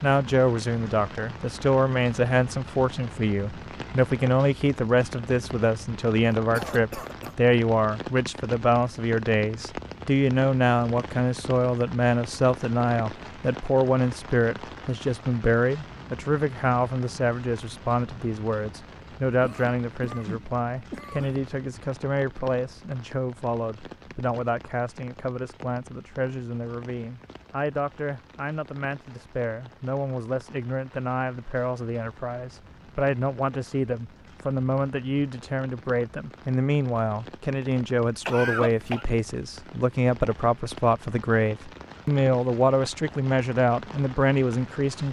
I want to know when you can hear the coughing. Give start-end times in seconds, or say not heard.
6.5-7.3, 19.4-21.4, 38.2-39.0.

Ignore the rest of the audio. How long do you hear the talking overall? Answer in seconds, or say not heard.
45 s.